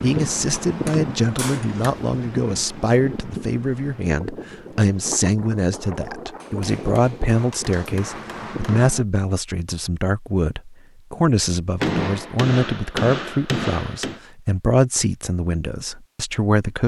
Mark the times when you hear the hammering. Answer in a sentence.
You can hear the hammering from 0.5 to 1.9 s, from 6.4 to 8.9 s and from 11.8 to 14.2 s.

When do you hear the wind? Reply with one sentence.
The wind can be heard from 0.0 to 9.1 s.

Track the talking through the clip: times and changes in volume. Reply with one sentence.
The talking can be heard from 0.0 to 16.8 s, at a steady volume.